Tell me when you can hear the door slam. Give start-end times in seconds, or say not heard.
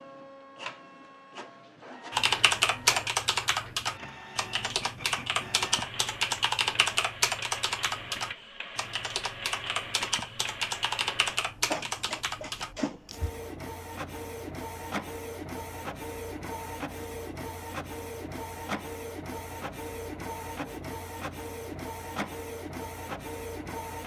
not heard.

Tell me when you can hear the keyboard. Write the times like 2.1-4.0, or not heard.
2.1-13.3.